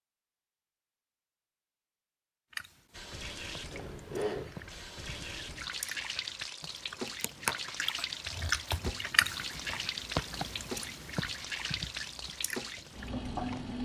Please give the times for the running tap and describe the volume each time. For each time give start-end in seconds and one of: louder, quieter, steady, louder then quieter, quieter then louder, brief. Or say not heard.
2.9-13.8 steady.